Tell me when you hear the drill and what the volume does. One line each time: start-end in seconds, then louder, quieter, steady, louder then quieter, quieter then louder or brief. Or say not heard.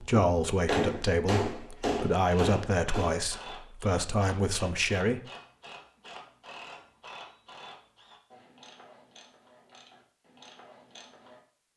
not heard.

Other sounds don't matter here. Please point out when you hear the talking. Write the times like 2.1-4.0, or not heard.
0.0-5.2.